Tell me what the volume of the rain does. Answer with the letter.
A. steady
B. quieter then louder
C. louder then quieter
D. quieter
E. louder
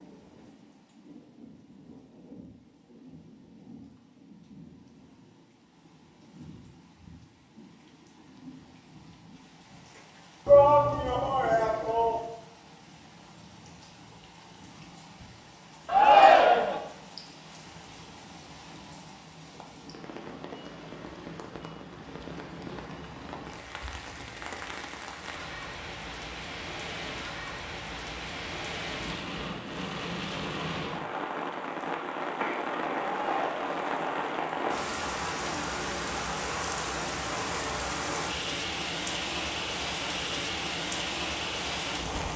E.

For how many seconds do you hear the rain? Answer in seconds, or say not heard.
42 s.